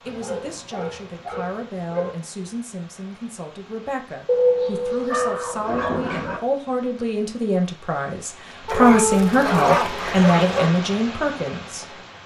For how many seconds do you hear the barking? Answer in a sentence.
The barking can be heard for 6 seconds in total.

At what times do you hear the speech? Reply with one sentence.
You can hear the speech from 0.0 to 12.0 s.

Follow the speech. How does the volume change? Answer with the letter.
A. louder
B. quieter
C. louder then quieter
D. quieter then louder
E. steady
A.